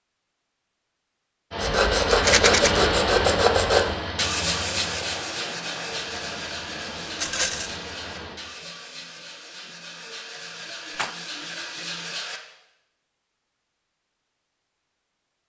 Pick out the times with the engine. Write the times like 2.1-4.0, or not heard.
1.5-8.4.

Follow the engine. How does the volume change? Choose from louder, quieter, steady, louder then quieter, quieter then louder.
quieter.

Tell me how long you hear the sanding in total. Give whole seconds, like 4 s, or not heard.
11 s.